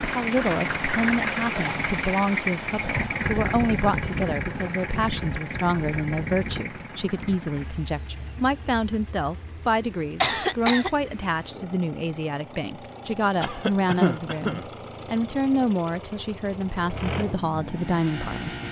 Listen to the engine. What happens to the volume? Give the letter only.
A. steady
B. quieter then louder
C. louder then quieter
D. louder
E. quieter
B.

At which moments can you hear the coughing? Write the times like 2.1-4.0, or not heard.
1.4-1.8, 10.2-10.9, 13.4-14.7.